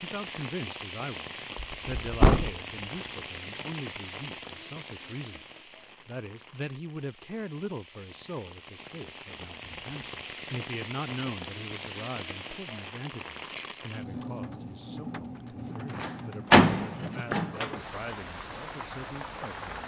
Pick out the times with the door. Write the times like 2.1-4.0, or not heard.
1.6-2.5, 16.0-17.6.